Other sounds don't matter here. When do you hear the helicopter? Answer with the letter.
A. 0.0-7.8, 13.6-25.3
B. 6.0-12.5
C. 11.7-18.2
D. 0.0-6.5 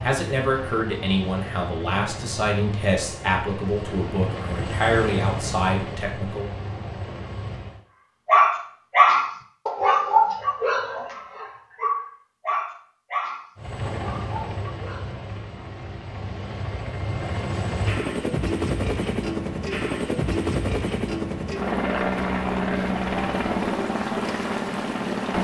A.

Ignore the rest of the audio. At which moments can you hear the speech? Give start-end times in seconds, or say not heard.
0.0-6.5.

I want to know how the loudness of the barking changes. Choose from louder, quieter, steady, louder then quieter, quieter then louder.
quieter.